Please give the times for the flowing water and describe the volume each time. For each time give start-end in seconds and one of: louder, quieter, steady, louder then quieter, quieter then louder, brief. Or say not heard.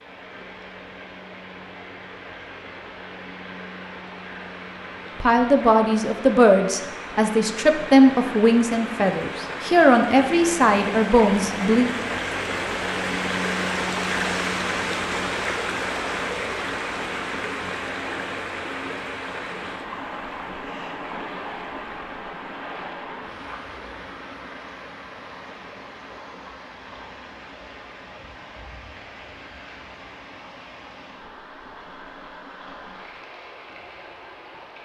0.0-34.7 louder then quieter.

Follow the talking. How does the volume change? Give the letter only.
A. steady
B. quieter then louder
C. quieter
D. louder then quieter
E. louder
A.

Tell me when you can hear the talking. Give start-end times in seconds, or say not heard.
5.2-11.9.